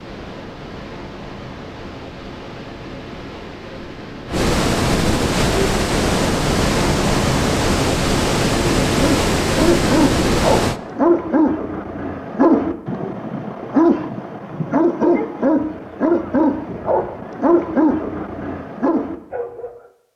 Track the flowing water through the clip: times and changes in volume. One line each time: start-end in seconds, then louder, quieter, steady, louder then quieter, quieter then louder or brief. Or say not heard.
0.0-10.8 louder.